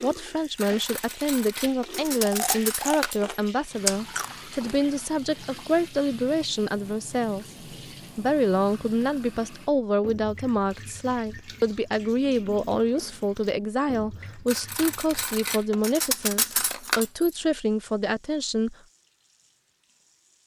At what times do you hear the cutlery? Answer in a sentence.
The cutlery can be heard from 0.6 to 3.2 s and from 14.4 to 17.3 s.